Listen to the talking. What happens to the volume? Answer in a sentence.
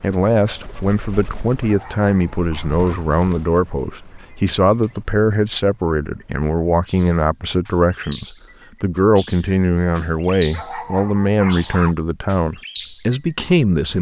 The volume of the talking stays about the same.